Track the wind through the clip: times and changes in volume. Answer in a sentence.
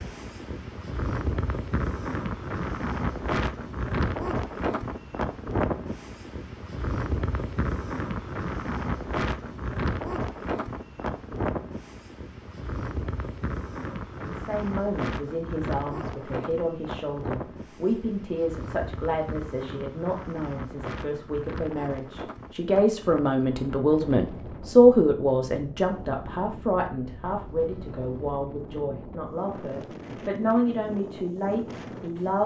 The wind can be heard from 0.0 to 32.4 s, getting quieter.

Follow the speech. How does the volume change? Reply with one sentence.
The volume of the speech goes up, then down.